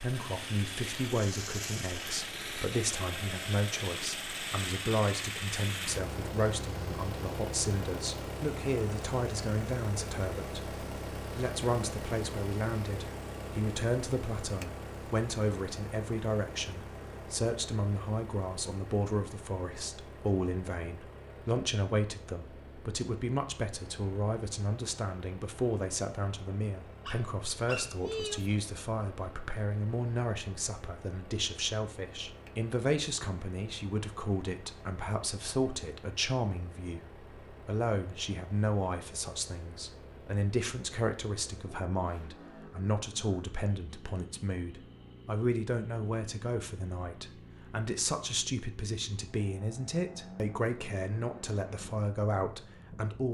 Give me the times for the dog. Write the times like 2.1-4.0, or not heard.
27.1-28.5.